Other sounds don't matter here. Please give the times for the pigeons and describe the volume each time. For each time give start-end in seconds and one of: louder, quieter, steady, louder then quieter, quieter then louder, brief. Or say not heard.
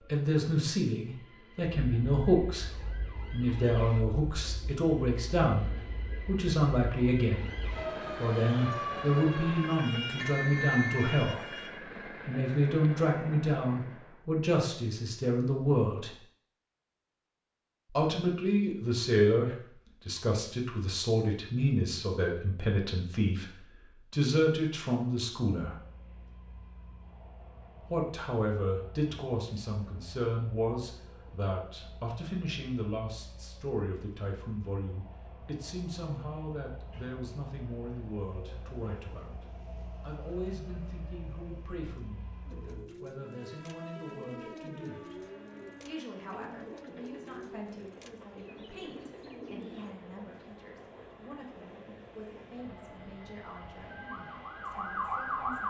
42.5-50.0 steady.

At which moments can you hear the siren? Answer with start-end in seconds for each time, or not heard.
1.8-11.7, 54.0-55.6.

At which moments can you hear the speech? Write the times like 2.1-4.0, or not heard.
0.0-16.1, 17.9-25.8, 27.9-39.4, 40.0-45.1, 45.8-54.0, 54.6-55.6.